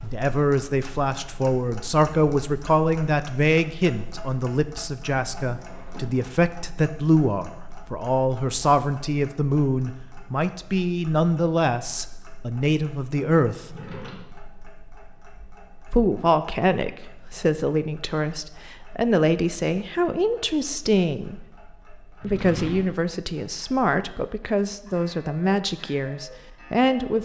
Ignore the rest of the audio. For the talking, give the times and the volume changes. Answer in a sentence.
You can hear the talking from 0.0 to 13.7 s, at a steady volume; from 15.9 to 21.6 s, at a steady volume; and from 22.2 to 27.2 s, at a steady volume.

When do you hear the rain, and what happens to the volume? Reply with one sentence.
The rain can't be heard in this clip.